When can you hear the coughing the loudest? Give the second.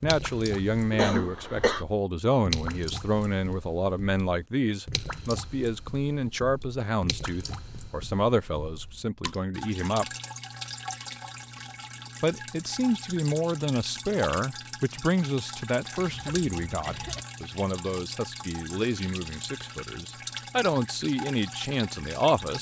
1 s.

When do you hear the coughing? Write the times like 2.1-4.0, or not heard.
0.9-1.9, 15.9-17.2.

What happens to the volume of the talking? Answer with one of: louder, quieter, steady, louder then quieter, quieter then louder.
steady.